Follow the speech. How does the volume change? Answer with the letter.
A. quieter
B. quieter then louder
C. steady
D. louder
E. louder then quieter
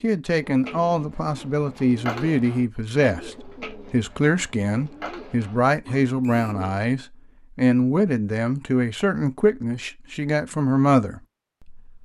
C.